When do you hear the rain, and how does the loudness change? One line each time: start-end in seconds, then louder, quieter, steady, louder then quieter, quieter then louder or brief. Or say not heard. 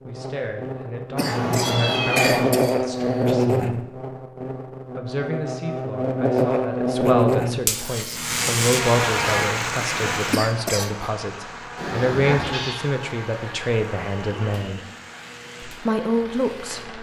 8.1-16.9 quieter.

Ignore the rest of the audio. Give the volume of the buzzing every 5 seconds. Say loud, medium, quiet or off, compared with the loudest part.
loud, loud, quiet, quiet.